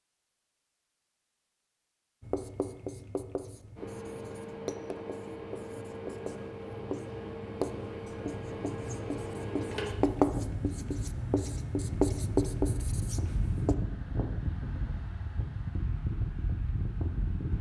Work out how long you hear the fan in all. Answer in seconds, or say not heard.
14 s.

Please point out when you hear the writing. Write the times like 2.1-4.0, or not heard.
2.2-13.8.